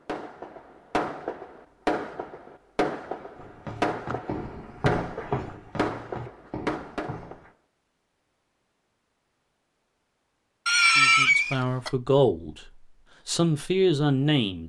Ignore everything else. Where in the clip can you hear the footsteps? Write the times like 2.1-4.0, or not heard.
3.4-7.5.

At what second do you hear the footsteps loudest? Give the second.
5 s.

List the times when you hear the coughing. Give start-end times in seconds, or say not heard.
10.7-11.9.